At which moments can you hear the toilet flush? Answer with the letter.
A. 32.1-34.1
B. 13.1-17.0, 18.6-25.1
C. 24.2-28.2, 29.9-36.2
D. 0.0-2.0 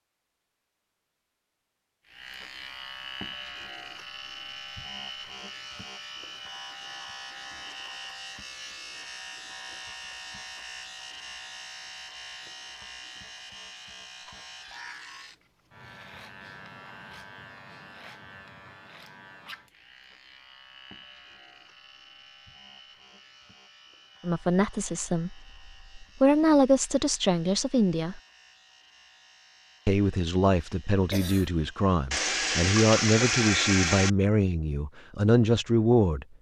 A.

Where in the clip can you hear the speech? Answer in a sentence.
The speech can be heard from 24.2 to 28.2 s and from 29.9 to 36.2 s.